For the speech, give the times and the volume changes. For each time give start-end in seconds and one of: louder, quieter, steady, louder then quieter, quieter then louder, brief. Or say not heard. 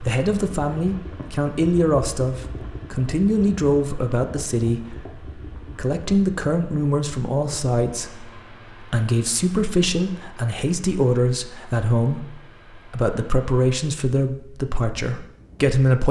0.0-16.0 steady.